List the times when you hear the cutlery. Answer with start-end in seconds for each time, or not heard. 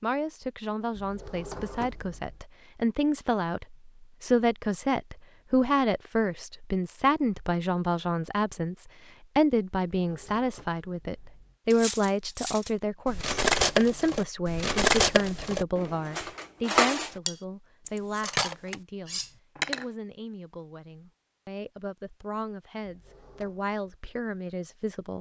11.7-19.9.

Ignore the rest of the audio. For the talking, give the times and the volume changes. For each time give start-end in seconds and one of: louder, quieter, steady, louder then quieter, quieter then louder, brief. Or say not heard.
0.0-25.1 quieter.